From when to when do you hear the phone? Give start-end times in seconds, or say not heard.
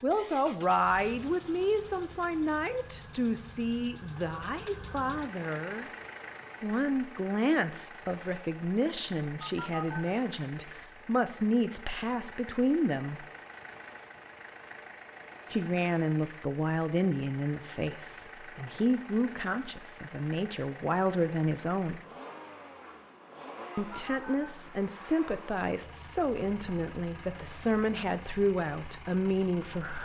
9.4-10.1, 23.9-24.6.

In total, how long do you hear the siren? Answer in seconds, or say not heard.
not heard.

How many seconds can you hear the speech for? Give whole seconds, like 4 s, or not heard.
25 s.